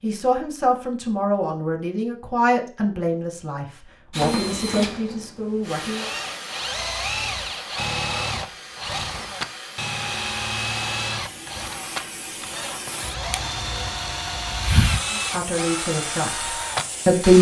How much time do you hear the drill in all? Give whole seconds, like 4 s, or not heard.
13 s.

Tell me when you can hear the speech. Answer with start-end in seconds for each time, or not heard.
0.0-6.0, 15.1-17.3.